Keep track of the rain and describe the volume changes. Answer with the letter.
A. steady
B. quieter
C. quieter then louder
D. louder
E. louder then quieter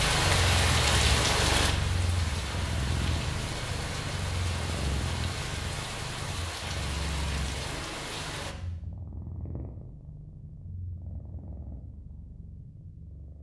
B.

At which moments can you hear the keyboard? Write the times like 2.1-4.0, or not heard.
not heard.